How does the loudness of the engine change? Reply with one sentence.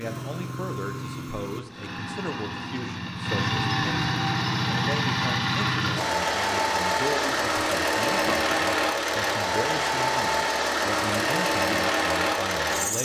The loudness of the engine goes up.